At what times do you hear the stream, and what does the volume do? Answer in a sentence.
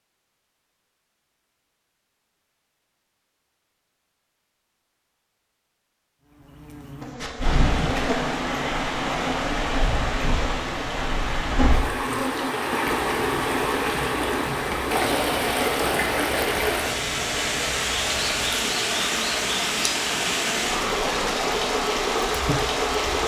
The stream can be heard from 7.2 to 23.2 s, at a steady volume.